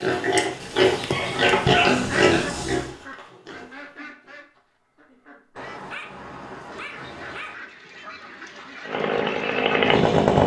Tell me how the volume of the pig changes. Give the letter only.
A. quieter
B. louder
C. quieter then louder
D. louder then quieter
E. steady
A.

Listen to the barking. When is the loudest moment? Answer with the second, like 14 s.
2 s.